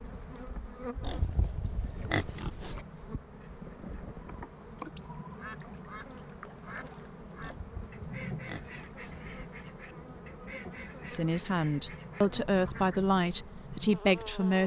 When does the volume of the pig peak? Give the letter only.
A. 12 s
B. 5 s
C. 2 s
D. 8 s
C.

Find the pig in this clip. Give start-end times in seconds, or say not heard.
1.0-2.9, 7.4-9.2.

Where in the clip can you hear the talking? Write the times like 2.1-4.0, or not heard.
11.1-14.6.